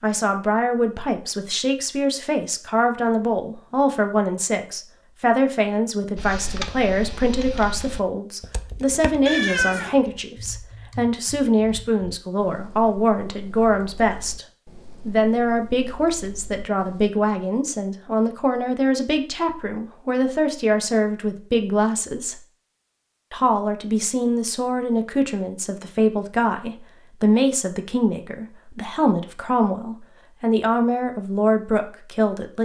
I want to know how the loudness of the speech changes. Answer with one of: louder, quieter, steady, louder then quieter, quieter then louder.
steady.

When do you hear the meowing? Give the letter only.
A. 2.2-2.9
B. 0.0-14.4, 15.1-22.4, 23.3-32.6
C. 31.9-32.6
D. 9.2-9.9
D.